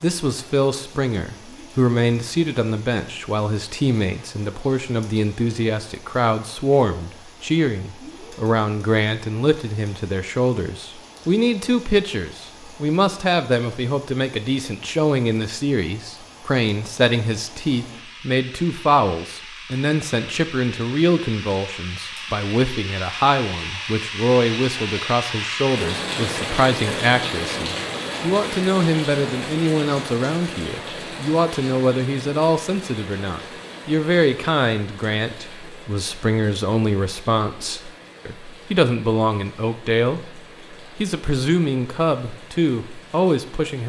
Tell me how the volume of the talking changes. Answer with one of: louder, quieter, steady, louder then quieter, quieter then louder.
steady.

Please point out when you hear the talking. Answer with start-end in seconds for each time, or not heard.
0.0-43.8.